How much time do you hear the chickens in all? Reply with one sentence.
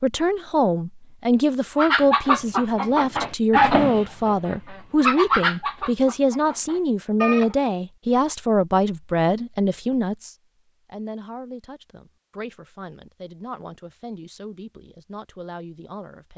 The chickens can be heard for 6 seconds in total.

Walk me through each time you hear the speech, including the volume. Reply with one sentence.
You can hear the speech from 0.0 to 16.3 s, getting quieter.